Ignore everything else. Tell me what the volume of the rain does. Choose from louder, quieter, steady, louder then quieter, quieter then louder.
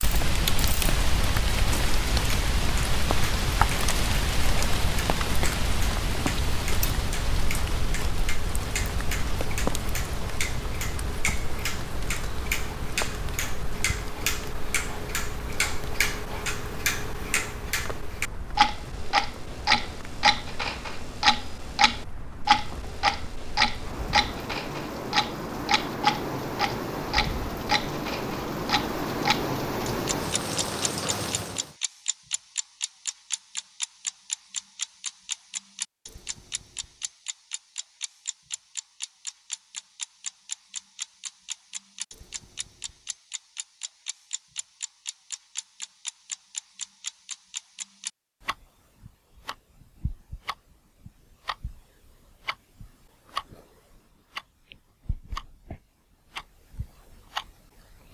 quieter then louder.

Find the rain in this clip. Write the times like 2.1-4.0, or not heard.
0.0-31.8.